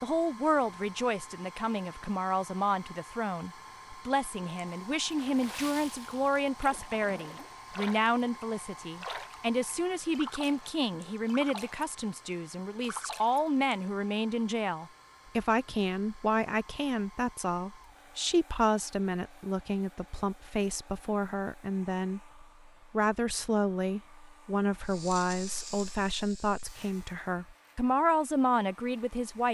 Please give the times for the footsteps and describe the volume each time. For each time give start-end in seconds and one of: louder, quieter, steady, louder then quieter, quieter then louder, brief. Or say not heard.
not heard.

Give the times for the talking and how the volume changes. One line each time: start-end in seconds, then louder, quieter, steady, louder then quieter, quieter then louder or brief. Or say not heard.
0.0-29.5 steady.